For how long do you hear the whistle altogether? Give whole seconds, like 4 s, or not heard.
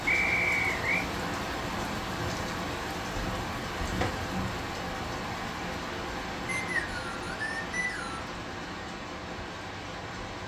3 s.